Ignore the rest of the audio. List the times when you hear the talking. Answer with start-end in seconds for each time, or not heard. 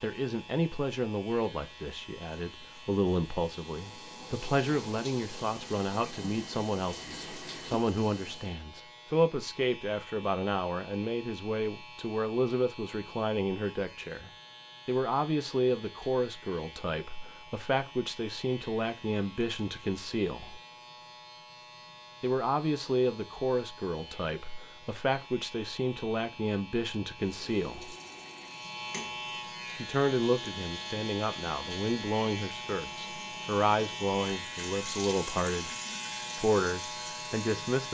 0.0-20.6, 22.2-27.9, 29.8-35.7, 36.4-37.8.